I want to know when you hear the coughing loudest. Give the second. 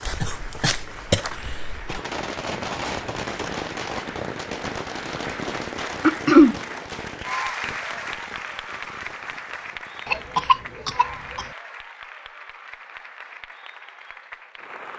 6 s.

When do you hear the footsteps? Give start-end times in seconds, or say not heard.
0.0-1.9.